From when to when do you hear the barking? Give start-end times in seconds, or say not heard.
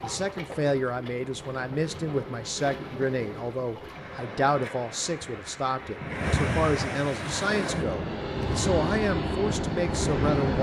not heard.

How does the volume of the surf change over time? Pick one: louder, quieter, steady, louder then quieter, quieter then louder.
louder.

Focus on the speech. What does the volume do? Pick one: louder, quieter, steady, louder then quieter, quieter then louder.
steady.